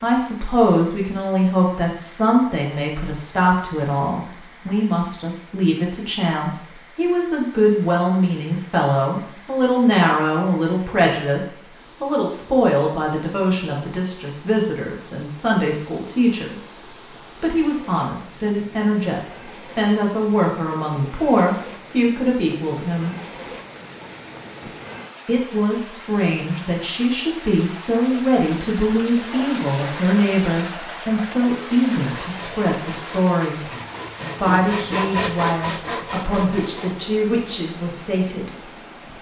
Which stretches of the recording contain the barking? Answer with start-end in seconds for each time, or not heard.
not heard.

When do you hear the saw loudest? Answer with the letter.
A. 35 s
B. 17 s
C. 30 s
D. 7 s
A.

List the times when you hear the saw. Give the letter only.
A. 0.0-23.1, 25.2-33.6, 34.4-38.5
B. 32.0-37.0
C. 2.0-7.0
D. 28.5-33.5
B.